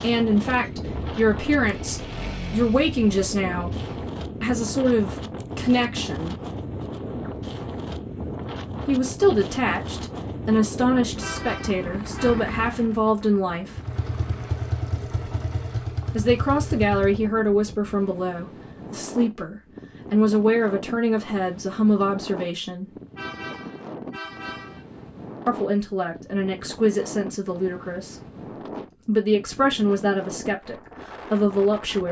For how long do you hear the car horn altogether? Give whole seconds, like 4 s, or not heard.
3 s.